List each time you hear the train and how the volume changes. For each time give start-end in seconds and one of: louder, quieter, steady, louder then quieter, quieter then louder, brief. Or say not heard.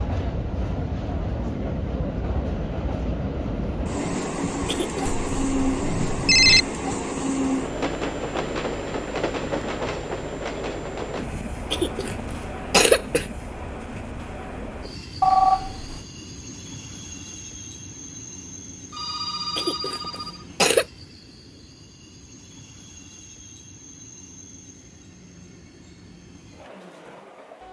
0.0-27.6 quieter.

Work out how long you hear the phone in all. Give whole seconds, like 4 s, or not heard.
4 s.